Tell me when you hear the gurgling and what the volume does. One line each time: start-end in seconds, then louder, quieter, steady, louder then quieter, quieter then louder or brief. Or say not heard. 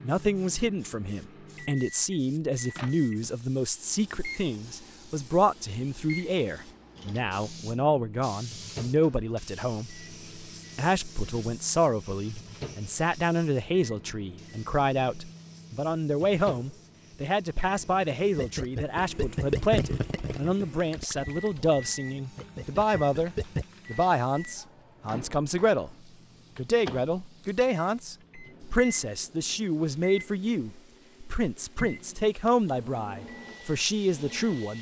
18.4-23.6 quieter then louder.